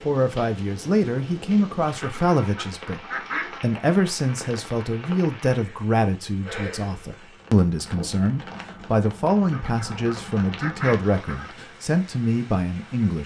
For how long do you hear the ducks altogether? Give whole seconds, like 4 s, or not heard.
4 s.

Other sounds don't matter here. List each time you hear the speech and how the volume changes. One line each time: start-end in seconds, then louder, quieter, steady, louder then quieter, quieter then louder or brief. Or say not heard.
0.0-13.2 steady.